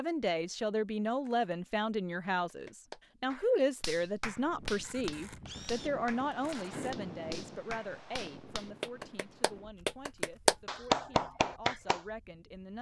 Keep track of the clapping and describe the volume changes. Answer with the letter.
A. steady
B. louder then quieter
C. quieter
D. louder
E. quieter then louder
D.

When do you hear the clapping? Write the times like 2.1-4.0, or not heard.
2.5-12.0.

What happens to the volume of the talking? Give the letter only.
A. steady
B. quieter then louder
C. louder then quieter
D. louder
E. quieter
E.